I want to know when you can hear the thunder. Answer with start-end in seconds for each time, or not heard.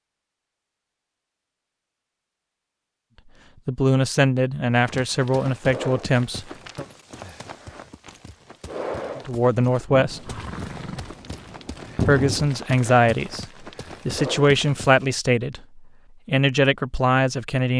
9.9-12.5.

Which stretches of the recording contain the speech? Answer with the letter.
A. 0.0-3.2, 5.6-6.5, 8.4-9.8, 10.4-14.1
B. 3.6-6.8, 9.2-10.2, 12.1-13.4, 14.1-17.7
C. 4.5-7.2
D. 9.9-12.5
B.